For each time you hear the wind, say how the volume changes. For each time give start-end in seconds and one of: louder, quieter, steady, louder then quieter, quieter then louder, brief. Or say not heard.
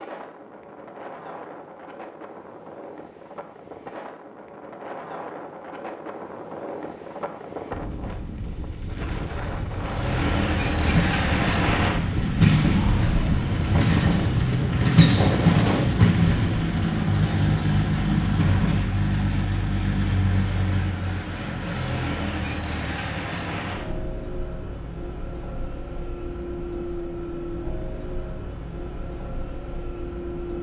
0.0-18.9 louder.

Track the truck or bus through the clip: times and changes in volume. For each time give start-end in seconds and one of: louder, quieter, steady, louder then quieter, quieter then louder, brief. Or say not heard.
9.7-30.5 quieter.